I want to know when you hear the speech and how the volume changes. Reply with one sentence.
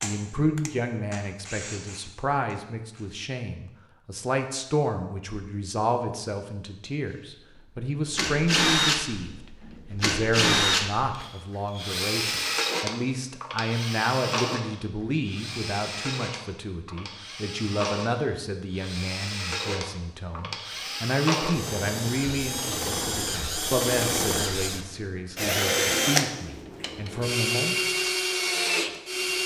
The speech can be heard from 0.0 to 27.9 s, at a steady volume.